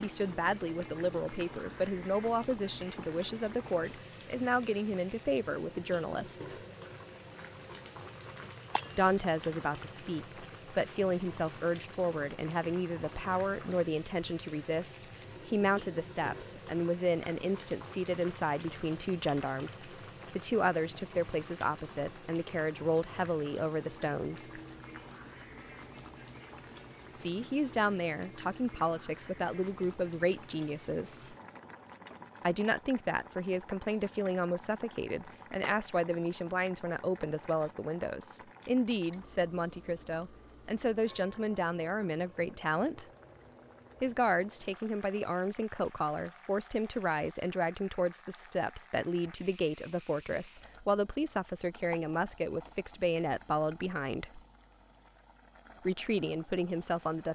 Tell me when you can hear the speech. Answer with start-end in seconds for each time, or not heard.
0.0-6.5, 8.9-24.6, 27.1-31.4, 32.4-43.0, 44.0-54.4, 55.9-57.3.